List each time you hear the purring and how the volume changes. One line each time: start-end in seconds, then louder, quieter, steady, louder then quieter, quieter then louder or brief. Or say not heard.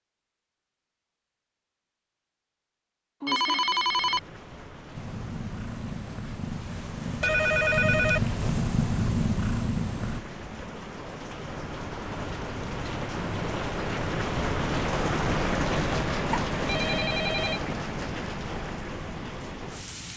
4.9-10.2 louder.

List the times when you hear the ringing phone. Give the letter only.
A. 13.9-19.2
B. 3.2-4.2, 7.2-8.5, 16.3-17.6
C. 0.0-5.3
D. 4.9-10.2
B.